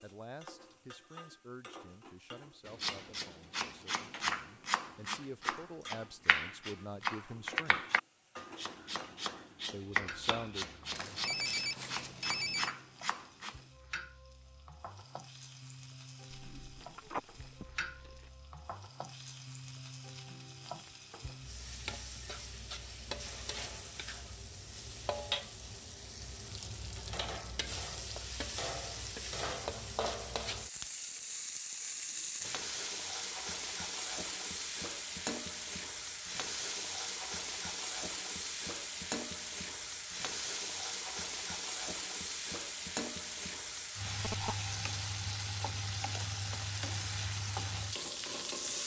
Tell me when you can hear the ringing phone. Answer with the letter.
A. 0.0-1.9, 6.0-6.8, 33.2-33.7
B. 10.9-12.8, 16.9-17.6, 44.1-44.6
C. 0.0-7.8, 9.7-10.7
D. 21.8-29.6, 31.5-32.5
B.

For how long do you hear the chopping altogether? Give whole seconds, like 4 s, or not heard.
11 s.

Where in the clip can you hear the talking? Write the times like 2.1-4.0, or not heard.
0.0-7.8, 9.7-10.7.